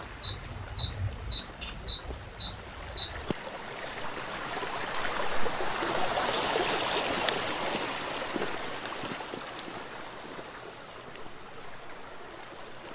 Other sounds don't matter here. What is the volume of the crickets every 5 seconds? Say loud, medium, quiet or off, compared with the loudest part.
loud, medium, quiet.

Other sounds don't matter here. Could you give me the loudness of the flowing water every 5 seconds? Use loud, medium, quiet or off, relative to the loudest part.
medium, loud, quiet.